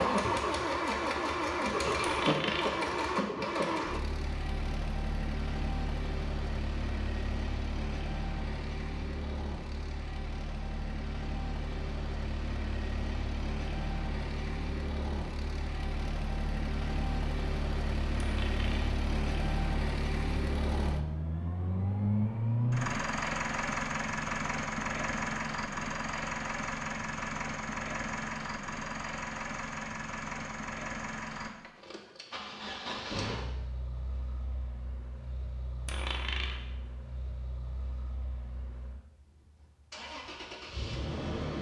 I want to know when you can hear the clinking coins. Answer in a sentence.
You can hear the clinking coins from 2.0 to 2.8 s, from 18.2 to 18.9 s and from 35.9 to 36.6 s.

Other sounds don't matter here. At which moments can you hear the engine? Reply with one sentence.
You can hear the engine from 0.0 to 41.5 s.